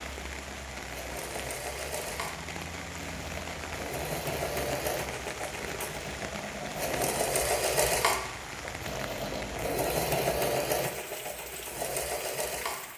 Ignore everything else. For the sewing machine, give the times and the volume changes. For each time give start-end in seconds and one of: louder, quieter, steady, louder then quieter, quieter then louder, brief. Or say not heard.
0.0-12.8 louder.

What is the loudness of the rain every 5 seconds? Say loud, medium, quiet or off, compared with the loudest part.
loud, loud, medium.